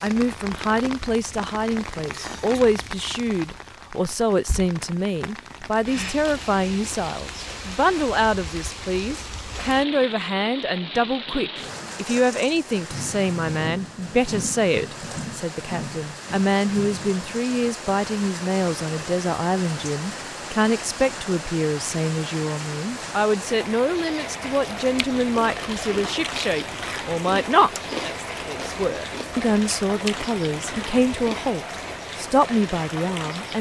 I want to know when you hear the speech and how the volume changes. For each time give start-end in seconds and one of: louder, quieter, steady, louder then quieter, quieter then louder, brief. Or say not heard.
0.0-33.5 steady.